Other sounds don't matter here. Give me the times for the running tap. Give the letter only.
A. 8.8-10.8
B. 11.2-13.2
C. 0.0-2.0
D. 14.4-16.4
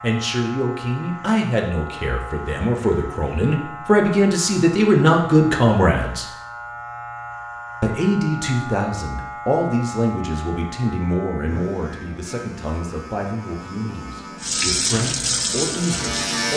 D.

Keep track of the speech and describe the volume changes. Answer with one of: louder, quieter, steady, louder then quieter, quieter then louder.
louder then quieter.